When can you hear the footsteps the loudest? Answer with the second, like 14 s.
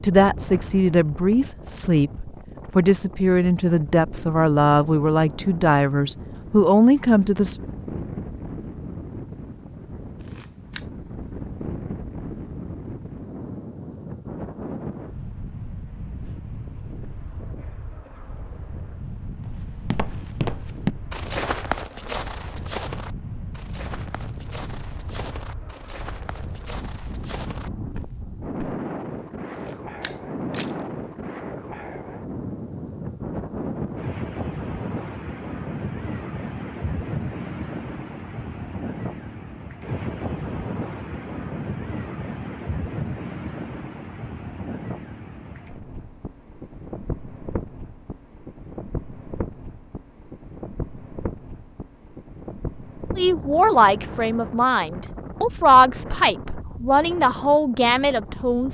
21 s.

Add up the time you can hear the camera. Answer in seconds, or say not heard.
2 s.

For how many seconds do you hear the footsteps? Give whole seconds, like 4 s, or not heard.
9 s.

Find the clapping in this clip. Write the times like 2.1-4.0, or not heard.
not heard.